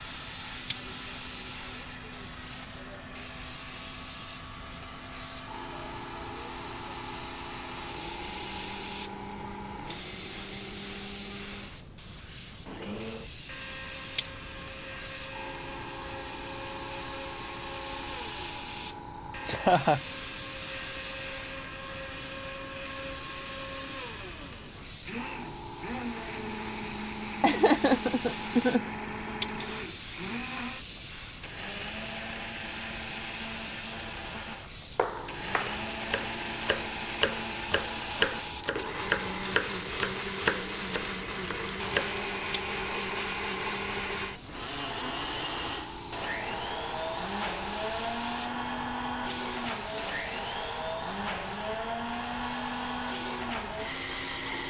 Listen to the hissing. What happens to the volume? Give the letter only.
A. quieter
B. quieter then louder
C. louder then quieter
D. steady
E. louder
D.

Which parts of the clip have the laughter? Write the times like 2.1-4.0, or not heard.
19.4-20.0, 27.4-28.9.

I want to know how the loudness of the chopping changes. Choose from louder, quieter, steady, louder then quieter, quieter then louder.
louder then quieter.